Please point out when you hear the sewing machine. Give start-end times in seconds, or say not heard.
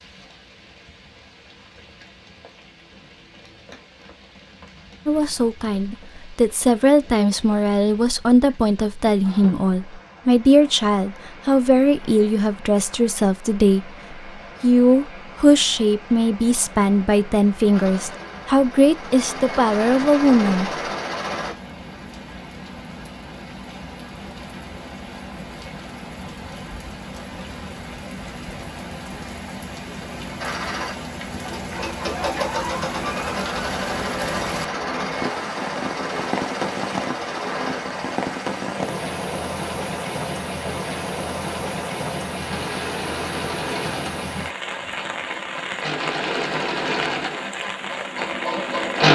17.7-21.6, 30.4-49.0.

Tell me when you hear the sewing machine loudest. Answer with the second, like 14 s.
49 s.